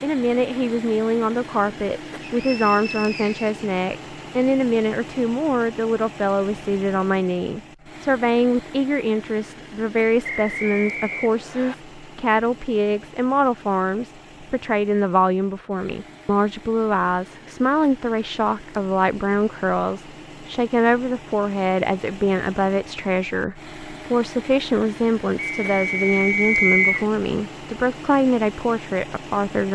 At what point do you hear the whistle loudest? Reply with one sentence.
The volume of the whistle peaks at 27 seconds.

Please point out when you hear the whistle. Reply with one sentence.
You can hear the whistle from 2.2 to 3.5 s, from 10.2 to 11.8 s and from 25.4 to 27.1 s.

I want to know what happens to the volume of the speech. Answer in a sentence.
The loudness of the speech stays about the same.